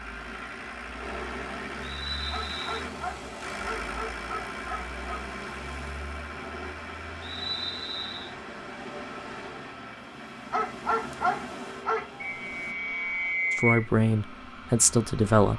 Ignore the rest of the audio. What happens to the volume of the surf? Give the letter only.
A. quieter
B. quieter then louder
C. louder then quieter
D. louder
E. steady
E.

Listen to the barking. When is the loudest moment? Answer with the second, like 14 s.
11 s.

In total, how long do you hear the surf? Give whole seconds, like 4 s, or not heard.
13 s.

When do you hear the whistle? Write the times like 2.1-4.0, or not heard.
1.8-2.9, 7.2-8.3, 12.2-13.8.